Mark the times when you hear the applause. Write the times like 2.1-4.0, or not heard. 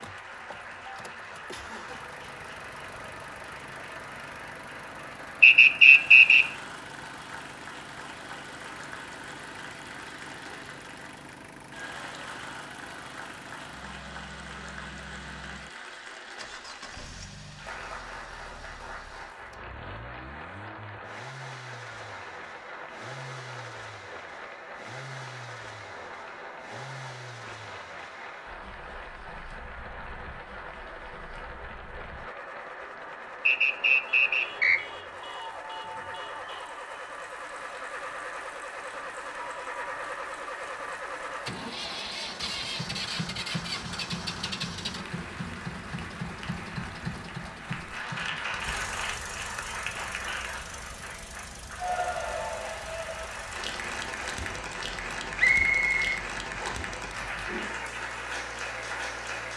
0.0-59.5.